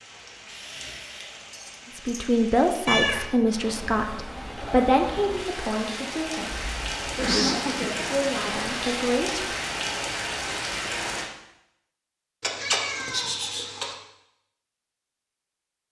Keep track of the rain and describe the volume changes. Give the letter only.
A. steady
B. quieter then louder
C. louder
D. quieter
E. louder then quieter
C.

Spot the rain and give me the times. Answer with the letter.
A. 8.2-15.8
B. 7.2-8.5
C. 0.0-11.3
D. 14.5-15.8
C.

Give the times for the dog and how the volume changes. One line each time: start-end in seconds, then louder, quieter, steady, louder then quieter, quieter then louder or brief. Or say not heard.
not heard.